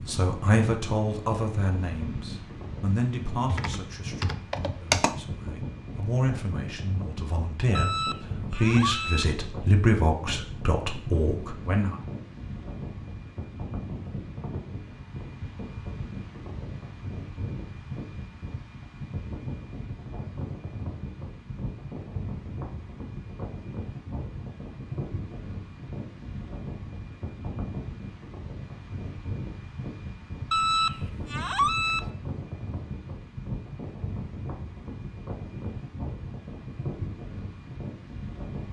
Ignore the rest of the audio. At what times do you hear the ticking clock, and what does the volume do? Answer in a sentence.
The ticking clock can't be heard in this clip.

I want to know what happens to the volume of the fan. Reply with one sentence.
The volume of the fan stays about the same.